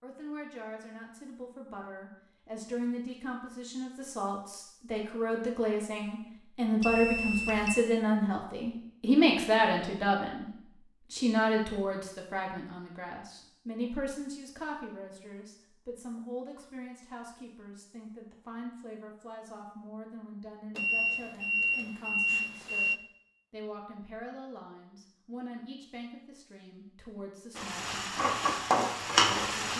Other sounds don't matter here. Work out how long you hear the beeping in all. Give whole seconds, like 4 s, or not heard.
3 s.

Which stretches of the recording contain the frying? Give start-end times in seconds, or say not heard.
27.6-29.7.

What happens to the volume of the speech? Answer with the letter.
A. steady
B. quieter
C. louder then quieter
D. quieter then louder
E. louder
C.